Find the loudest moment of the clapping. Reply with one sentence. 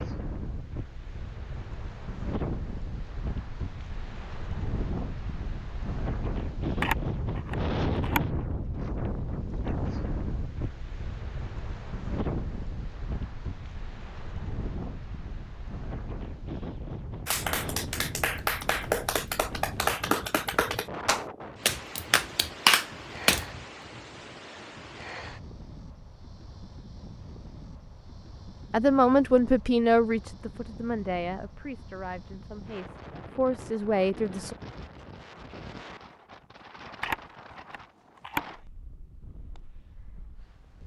The volume of the clapping peaks at 23 seconds.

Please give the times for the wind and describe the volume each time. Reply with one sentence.
The wind can be heard from 0.0 to 40.8 s, getting quieter.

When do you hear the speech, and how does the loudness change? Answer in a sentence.
The speech can be heard from 28.7 to 34.5 s, getting quieter then louder.